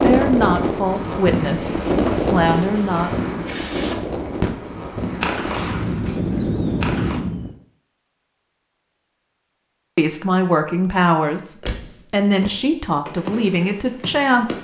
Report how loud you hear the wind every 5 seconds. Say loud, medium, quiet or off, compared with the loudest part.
loud, loud, off.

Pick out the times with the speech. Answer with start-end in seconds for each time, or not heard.
0.0-3.1, 9.9-14.5.